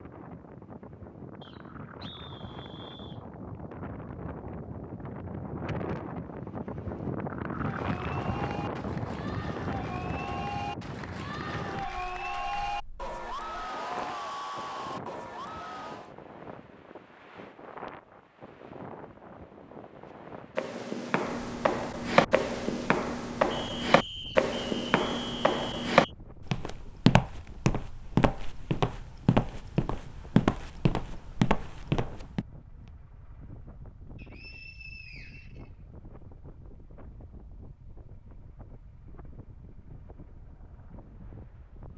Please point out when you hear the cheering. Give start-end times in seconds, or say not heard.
7.5-16.1.